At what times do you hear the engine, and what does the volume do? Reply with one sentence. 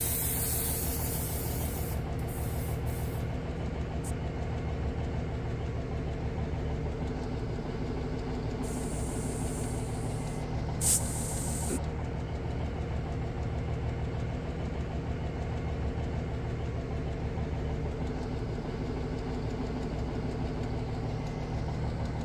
You can hear the engine from 0.0 to 22.2 s, at a steady volume.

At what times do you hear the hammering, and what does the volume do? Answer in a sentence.
You can't hear the hammering here.